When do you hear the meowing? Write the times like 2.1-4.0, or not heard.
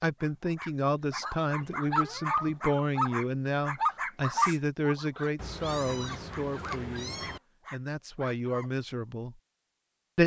1.6-2.6, 5.3-7.4.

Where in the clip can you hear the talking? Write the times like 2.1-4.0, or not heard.
0.0-9.3.